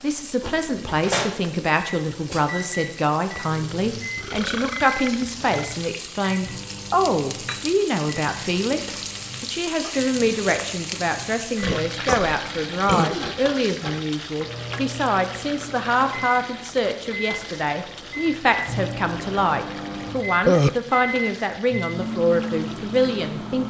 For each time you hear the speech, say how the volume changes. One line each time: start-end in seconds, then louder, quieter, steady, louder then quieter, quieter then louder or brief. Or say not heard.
0.0-23.6 steady.